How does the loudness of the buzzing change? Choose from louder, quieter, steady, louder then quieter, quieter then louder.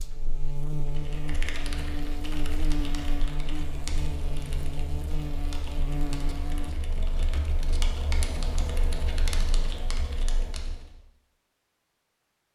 steady.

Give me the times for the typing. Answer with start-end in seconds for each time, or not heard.
0.8-10.9.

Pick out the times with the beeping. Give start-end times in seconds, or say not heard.
not heard.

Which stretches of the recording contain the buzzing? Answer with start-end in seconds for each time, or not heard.
0.0-6.8.